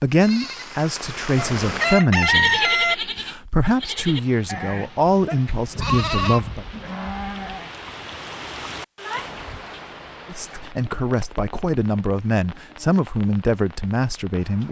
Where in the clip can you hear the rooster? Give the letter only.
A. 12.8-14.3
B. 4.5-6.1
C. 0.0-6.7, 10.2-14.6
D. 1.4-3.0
D.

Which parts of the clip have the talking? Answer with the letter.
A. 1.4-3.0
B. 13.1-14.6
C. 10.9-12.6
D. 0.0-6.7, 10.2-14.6
D.